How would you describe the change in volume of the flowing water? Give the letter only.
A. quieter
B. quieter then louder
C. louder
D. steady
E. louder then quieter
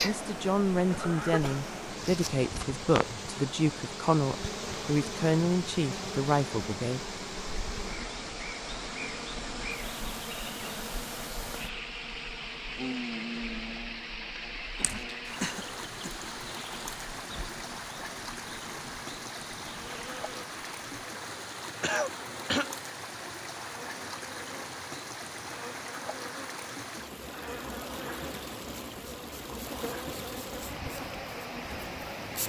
D.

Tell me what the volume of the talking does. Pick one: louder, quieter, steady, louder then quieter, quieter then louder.
steady.